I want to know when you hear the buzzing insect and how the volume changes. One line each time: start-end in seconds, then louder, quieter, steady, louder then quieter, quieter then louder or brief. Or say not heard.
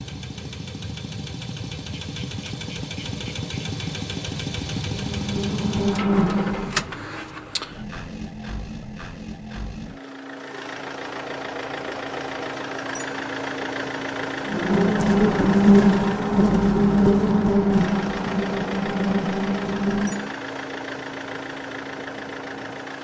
4.9-6.8 brief
14.4-20.3 quieter.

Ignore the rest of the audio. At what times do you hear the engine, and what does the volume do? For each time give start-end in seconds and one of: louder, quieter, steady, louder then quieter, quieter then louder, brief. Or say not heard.
0.0-22.9 steady.